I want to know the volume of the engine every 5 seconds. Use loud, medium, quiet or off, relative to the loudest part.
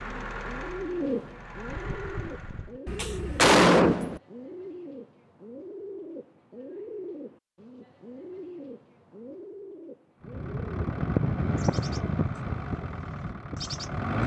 medium, off, loud.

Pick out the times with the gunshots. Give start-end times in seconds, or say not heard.
2.9-4.2.